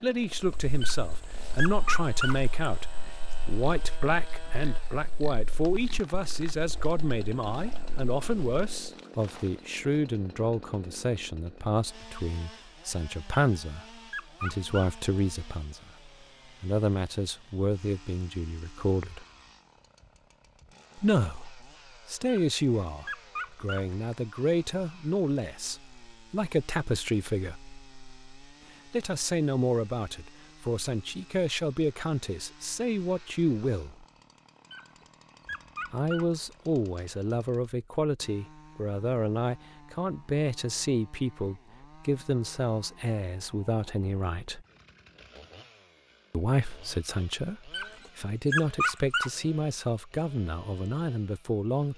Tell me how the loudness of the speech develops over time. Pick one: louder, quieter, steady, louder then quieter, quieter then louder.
steady.